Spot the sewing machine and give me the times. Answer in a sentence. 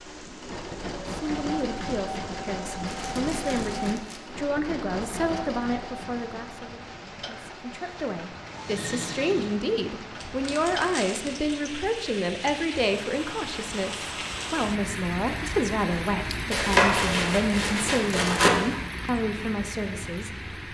You can hear the sewing machine from 0.0 to 9.6 s.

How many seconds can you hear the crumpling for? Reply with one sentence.
You can hear the crumpling for 5 seconds altogether.